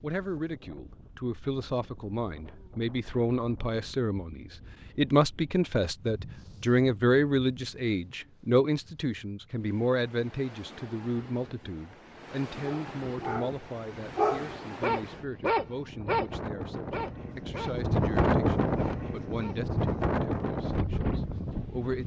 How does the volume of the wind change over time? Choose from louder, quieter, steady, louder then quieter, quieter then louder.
louder.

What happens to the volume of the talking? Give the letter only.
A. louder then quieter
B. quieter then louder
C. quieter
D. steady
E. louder
A.